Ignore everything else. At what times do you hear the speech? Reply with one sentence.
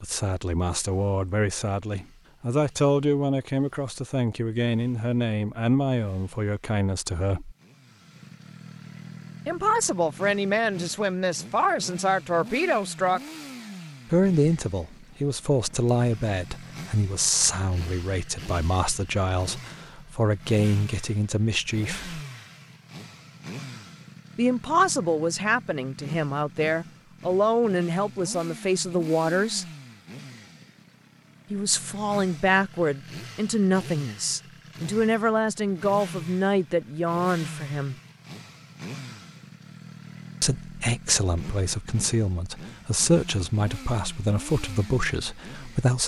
You can hear the speech from 0.0 to 7.5 s, from 9.4 to 13.2 s, from 14.1 to 22.2 s, from 24.4 to 29.6 s, from 31.5 to 38.0 s and from 40.4 to 46.0 s.